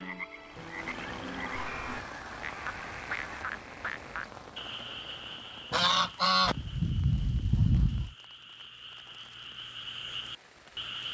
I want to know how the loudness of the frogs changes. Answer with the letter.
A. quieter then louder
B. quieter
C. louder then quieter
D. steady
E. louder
A.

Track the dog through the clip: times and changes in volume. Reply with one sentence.
You can't hear the dog here.